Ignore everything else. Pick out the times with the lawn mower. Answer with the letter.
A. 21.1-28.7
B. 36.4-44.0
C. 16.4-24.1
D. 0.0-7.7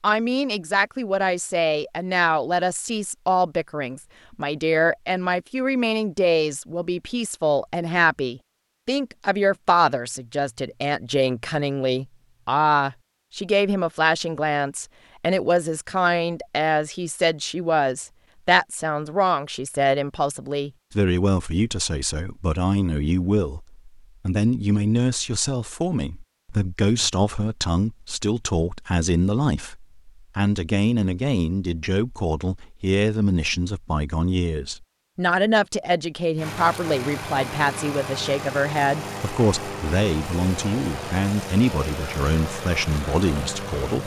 B.